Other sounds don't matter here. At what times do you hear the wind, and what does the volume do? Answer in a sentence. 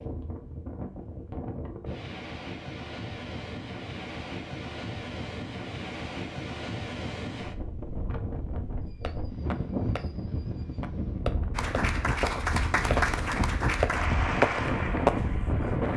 The wind can be heard from 0.0 to 15.9 s, getting louder.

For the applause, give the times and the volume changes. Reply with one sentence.
You can hear the applause from 11.6 to 15.9 s, getting quieter.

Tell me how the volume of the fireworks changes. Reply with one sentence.
The loudness of the fireworks goes up.